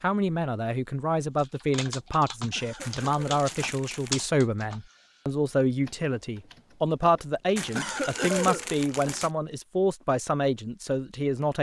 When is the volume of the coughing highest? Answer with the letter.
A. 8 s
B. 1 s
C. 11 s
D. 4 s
A.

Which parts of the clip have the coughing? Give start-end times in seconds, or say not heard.
2.5-3.2, 7.8-9.2.